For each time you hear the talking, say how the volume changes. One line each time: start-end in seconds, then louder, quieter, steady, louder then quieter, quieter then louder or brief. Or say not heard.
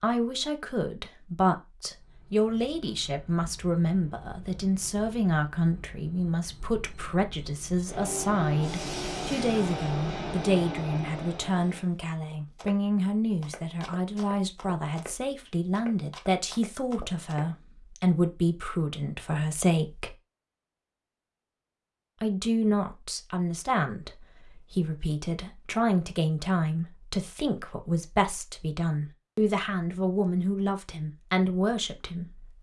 0.0-20.1 steady
22.2-32.5 steady.